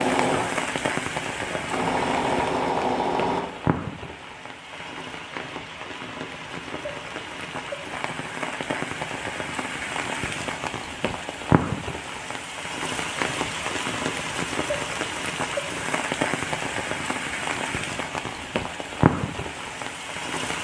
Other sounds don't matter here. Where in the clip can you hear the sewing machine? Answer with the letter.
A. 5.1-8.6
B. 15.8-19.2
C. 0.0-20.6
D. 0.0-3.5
D.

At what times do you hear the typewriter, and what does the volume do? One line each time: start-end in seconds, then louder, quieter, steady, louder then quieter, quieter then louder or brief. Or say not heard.
not heard.